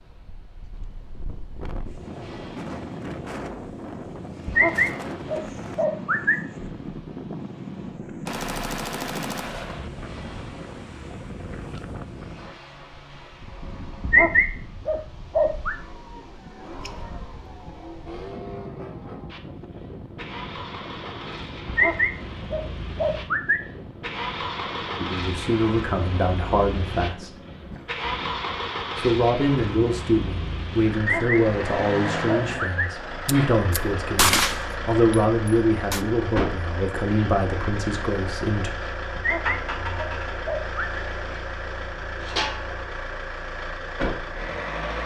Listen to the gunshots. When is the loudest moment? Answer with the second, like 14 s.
34 s.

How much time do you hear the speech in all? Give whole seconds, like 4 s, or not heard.
12 s.